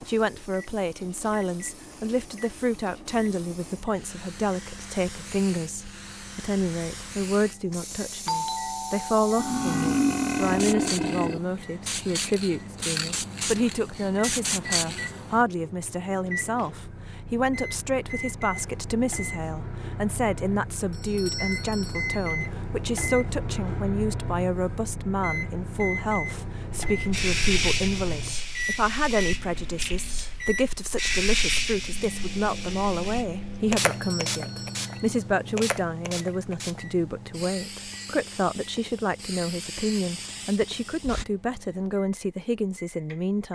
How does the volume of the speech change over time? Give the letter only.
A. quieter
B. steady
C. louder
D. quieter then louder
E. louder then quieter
B.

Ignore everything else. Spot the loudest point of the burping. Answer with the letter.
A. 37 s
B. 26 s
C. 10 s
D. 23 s
C.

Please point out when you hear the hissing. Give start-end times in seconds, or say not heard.
0.0-15.4, 26.9-41.2.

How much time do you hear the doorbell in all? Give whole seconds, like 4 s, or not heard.
4 s.